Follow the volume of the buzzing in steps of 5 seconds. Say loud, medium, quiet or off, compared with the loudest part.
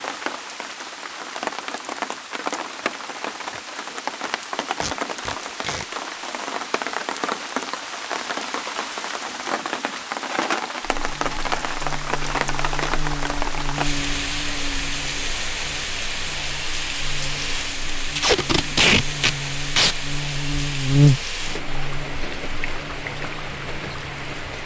off, off, medium, quiet, loud.